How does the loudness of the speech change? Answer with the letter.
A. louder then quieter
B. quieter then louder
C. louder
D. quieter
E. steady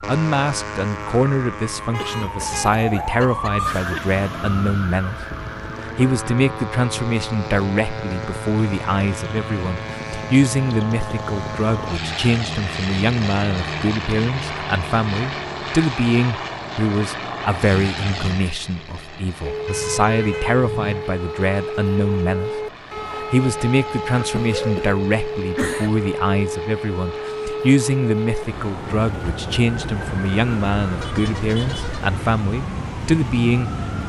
E.